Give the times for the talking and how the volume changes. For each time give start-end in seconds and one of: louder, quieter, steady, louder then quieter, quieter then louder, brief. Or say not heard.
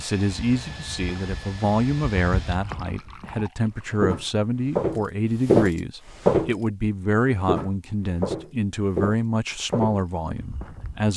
0.0-11.1 steady.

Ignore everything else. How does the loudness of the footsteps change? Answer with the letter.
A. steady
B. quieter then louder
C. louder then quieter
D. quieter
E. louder
C.